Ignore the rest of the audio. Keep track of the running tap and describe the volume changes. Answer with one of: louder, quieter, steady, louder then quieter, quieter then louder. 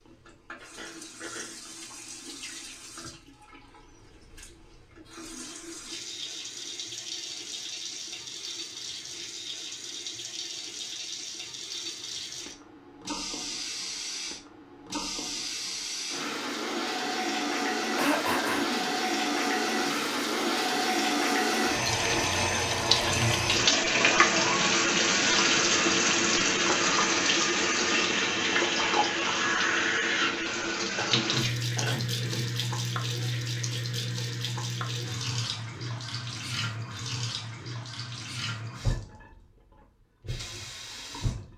louder then quieter.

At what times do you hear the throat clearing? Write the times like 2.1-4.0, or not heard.
0.6-1.6, 17.9-18.9, 30.9-32.5.